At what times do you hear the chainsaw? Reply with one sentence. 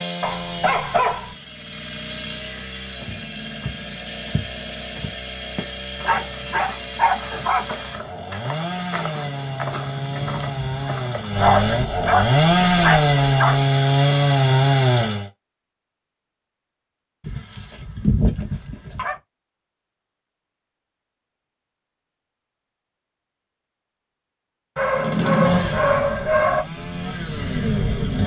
You can hear the chainsaw from 0.0 to 15.3 s and from 24.9 to 28.2 s.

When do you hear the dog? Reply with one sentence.
You can hear the dog from 0.2 to 1.4 s, from 6.0 to 7.7 s, from 11.3 to 13.7 s, from 17.2 to 19.1 s and from 24.8 to 26.6 s.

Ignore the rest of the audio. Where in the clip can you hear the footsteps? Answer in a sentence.
You can hear the footsteps from 3.0 to 11.6 s.